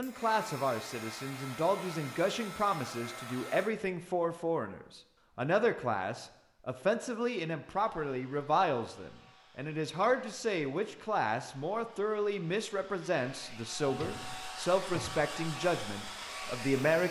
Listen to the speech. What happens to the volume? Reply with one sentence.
The loudness of the speech stays about the same.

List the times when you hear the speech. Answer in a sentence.
The speech can be heard from 0.0 to 17.0 s.